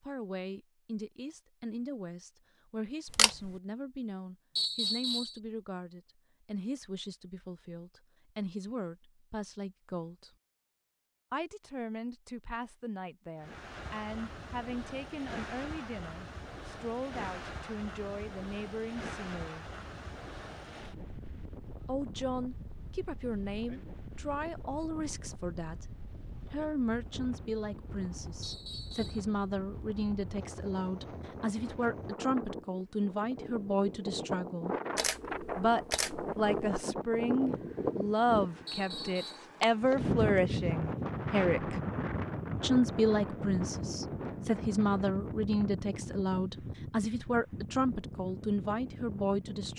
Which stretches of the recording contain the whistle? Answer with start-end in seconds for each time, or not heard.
4.5-5.4, 28.4-29.2, 38.6-39.5.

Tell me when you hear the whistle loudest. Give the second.
5 s.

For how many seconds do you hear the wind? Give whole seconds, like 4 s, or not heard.
36 s.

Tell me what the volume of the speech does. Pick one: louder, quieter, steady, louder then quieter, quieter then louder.
louder.